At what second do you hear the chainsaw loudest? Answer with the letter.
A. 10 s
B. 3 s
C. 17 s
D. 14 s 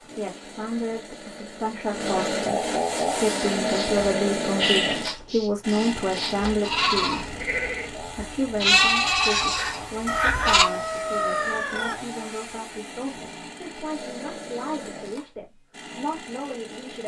B.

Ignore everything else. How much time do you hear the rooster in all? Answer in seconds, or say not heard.
2 s.